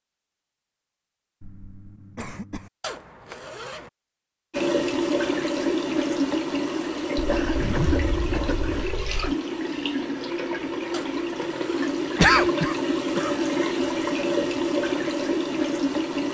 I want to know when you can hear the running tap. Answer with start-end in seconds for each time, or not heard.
4.5-16.2.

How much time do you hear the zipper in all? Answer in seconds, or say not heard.
4 s.